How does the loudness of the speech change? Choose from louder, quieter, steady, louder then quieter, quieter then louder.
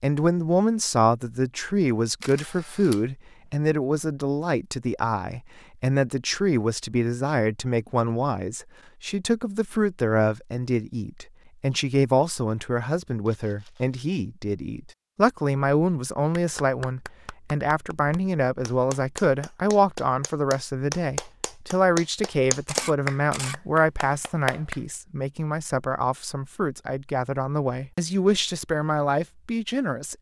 steady.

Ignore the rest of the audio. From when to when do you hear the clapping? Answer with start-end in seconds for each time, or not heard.
16.4-24.8.